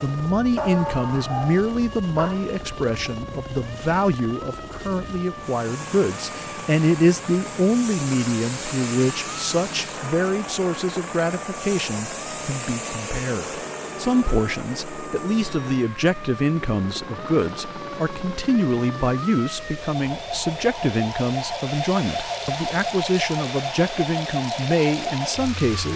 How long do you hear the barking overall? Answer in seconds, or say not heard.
2 s.